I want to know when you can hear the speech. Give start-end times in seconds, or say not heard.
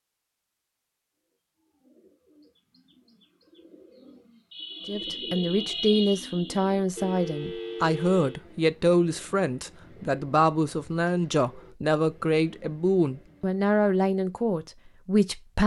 4.8-15.6.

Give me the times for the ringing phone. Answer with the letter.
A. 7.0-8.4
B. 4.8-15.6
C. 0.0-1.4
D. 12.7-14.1
A.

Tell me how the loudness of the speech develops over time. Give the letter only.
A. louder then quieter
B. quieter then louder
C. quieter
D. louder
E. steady
E.